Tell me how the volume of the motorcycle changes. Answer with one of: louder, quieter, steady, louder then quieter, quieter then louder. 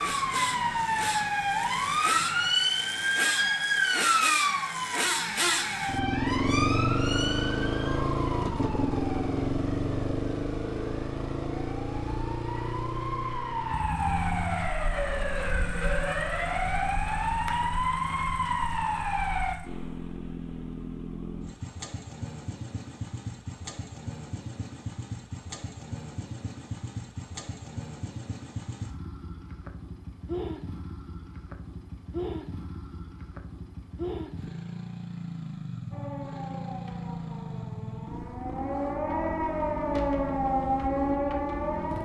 quieter.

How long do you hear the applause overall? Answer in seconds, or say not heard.
not heard.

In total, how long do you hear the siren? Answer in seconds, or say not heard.
26 s.